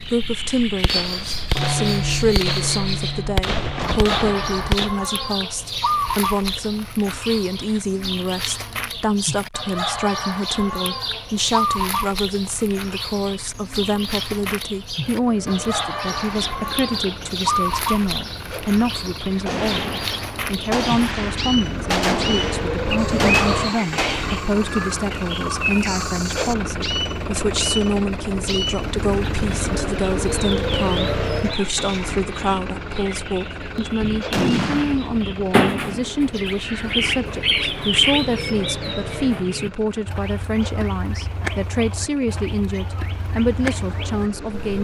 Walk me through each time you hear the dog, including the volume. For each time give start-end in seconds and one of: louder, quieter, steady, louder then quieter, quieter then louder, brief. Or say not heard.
not heard.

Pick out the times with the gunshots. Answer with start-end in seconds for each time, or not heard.
0.8-4.9, 19.4-24.4, 34.0-35.4.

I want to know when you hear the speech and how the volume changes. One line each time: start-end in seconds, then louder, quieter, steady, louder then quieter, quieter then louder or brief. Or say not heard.
0.1-44.7 steady.